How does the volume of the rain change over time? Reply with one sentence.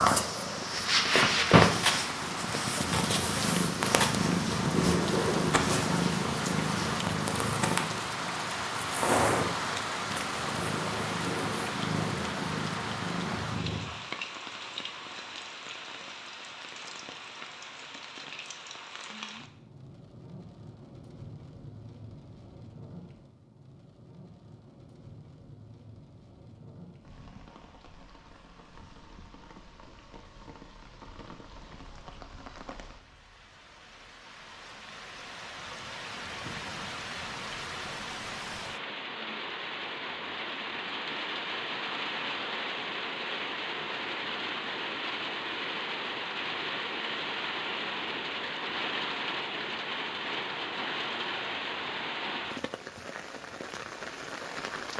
The volume of the rain goes down, then up.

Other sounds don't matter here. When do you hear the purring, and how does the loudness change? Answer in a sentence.
You can hear the purring from 0.0 to 13.9 s, getting quieter.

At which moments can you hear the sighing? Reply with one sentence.
The sighing can't be heard in this clip.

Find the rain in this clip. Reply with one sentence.
The rain can be heard from 0.1 to 54.9 s.